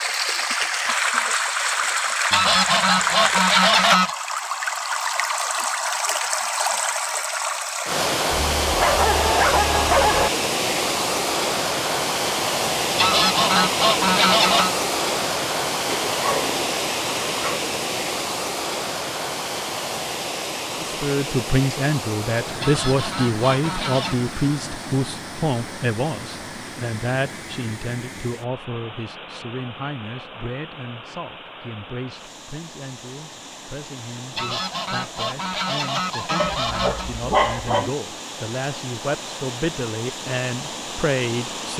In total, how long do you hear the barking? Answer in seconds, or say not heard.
5 s.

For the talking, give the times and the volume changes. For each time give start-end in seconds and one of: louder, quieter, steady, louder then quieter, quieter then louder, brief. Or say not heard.
20.8-41.7 quieter then louder.